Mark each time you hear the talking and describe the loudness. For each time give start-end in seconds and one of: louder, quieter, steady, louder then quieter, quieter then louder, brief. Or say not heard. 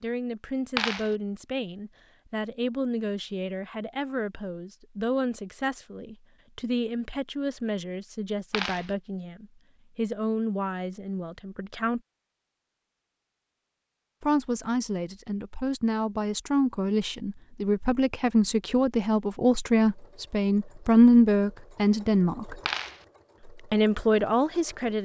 0.0-12.0 steady
14.2-22.6 louder
23.4-25.0 brief.